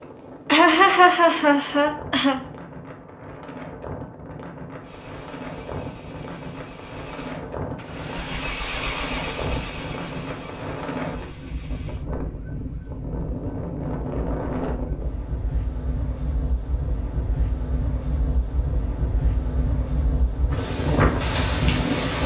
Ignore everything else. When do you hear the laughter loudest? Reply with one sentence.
The loudest moment of the laughter is at 1 second.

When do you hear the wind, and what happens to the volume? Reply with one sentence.
You can hear the wind from 0.0 to 22.2 s, getting louder.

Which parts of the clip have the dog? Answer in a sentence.
You can't hear the dog here.